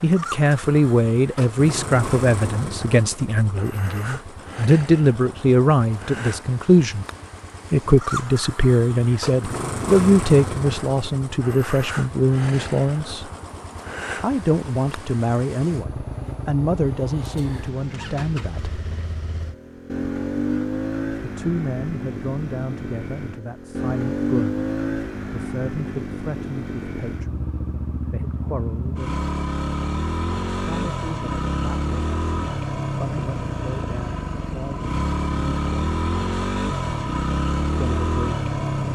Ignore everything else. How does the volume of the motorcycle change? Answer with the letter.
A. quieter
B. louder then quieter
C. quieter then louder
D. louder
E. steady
D.